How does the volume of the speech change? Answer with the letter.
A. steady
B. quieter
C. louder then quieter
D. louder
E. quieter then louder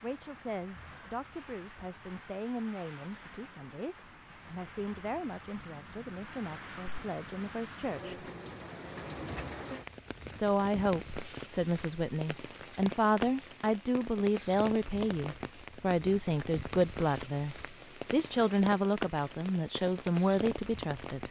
D.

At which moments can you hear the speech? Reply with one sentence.
The speech can be heard from 0.0 to 8.2 s and from 10.3 to 21.2 s.